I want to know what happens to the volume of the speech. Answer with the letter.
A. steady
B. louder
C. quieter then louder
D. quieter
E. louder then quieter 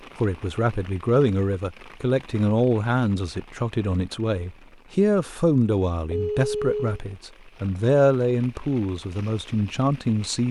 A.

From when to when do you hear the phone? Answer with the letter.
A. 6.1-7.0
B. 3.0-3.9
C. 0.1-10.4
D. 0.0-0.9
A.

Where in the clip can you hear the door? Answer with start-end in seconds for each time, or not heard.
not heard.